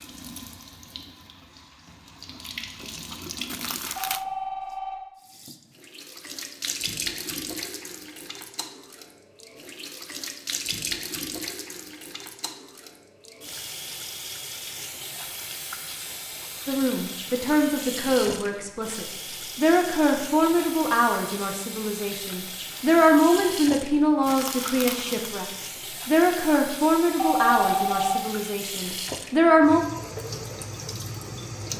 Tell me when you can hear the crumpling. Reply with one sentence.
You can hear the crumpling from 3.5 to 4.2 s and from 24.2 to 25.4 s.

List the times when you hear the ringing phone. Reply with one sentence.
The ringing phone can be heard from 4.0 to 5.0 s and from 27.1 to 28.2 s.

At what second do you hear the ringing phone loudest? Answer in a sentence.
The loudest moment of the ringing phone is at 28 seconds.